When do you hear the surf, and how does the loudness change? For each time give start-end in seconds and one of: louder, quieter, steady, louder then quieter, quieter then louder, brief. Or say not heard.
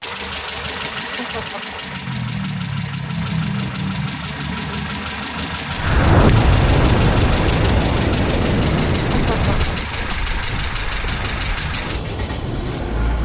5.8-13.2 quieter.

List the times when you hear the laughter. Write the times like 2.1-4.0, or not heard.
1.1-1.9, 9.1-9.9.